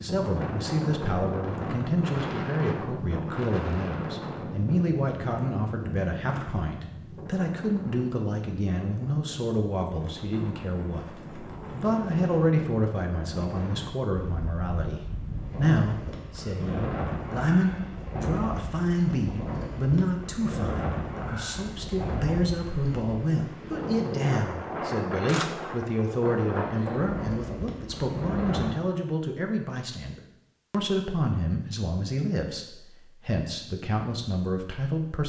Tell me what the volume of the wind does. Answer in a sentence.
The volume of the wind goes down, then up.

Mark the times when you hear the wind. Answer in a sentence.
You can hear the wind from 0.0 to 28.8 s.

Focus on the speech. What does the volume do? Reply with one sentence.
The loudness of the speech stays about the same.